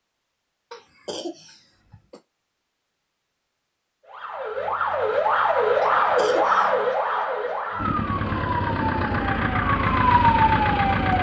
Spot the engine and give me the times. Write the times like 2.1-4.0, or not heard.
7.8-11.1.